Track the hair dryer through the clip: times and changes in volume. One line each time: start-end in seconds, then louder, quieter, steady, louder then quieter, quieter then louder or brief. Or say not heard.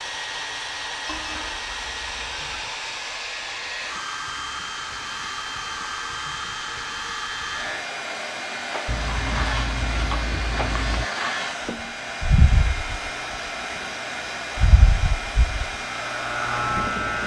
0.0-17.2 steady.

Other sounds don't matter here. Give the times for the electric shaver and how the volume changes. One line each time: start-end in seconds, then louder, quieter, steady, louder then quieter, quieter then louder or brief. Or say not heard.
0.0-17.2 louder.